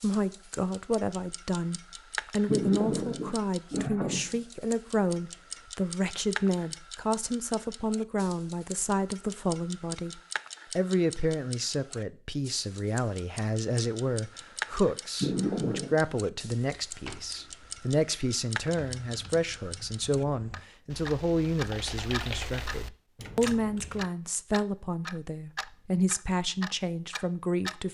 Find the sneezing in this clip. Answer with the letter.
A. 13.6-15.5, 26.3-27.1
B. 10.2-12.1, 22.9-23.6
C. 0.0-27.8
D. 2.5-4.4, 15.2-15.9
D.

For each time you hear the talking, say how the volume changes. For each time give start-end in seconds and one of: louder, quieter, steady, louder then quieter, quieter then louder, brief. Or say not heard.
0.0-27.8 steady.